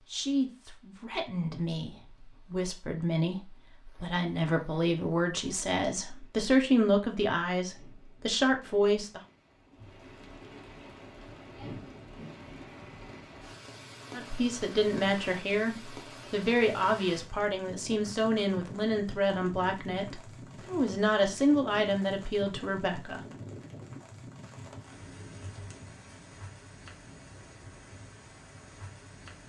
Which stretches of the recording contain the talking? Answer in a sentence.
The talking can be heard from 0.1 to 9.2 s and from 14.1 to 23.2 s.